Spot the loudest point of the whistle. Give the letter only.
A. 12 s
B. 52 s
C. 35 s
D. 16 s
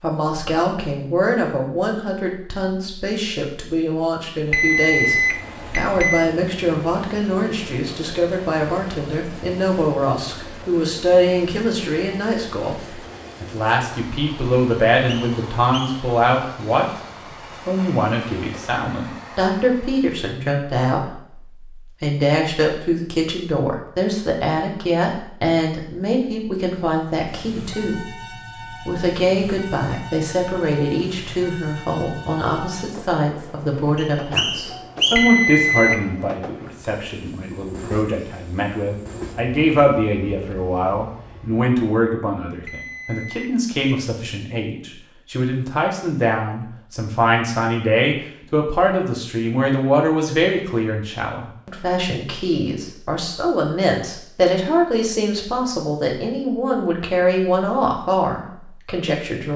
C.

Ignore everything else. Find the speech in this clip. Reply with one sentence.
You can hear the speech from 0.0 to 16.9 s, from 17.6 to 28.1 s and from 28.8 to 59.5 s.